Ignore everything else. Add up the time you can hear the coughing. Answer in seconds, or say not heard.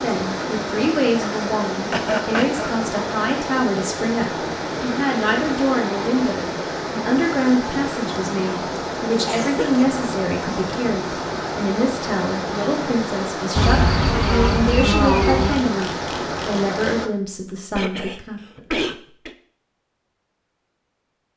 3 s.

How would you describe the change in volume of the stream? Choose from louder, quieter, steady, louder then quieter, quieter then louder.
steady.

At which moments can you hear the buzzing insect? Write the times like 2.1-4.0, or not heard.
13.6-16.8.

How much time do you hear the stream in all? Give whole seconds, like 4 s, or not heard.
17 s.